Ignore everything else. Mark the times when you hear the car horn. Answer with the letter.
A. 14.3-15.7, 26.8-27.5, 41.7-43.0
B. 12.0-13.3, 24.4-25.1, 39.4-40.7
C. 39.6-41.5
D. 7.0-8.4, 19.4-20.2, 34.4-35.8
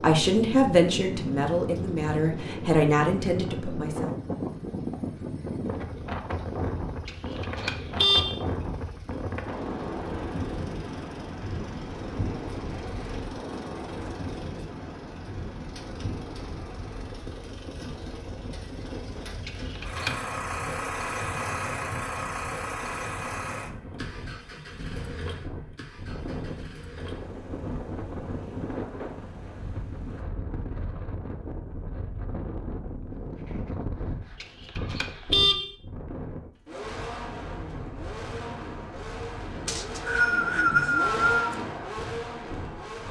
D.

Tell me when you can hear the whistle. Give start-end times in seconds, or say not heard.
39.6-41.5.